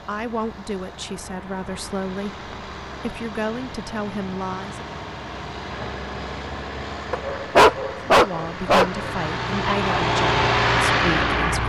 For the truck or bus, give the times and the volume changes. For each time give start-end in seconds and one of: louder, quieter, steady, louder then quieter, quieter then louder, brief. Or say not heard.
0.0-11.6 louder.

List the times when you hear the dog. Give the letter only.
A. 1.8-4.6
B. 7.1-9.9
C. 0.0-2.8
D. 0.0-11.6
B.